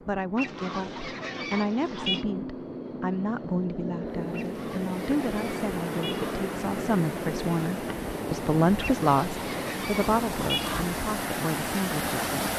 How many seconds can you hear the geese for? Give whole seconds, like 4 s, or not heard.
6 s.